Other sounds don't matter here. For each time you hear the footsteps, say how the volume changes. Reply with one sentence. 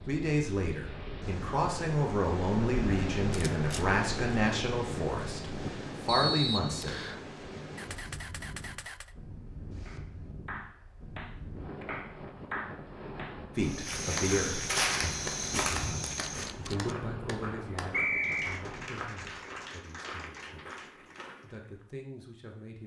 The footsteps can be heard from 13.6 to 21.9 s, getting quieter.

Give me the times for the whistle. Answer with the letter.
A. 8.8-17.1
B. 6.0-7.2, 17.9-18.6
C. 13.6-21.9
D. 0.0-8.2
B.